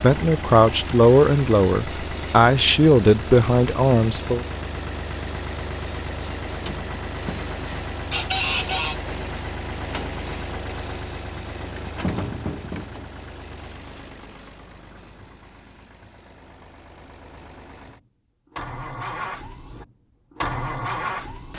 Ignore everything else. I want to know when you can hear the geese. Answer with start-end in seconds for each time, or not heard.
7.6-9.1.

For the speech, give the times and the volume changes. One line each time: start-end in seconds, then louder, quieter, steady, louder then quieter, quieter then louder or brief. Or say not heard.
0.0-4.5 steady.